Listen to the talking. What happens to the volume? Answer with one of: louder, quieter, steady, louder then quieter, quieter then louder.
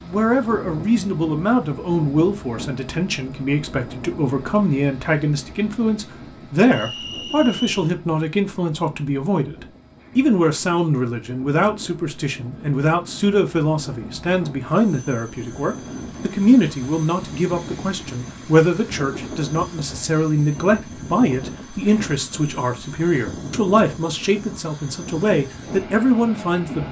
steady.